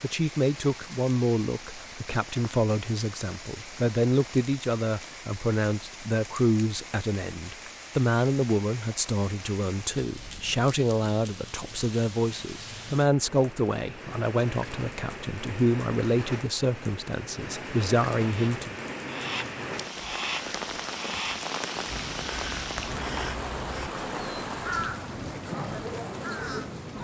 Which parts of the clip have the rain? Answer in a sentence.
The rain can be heard from 0.0 to 27.0 s.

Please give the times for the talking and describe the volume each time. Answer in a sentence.
The talking can be heard from 0.0 to 18.8 s, at a steady volume.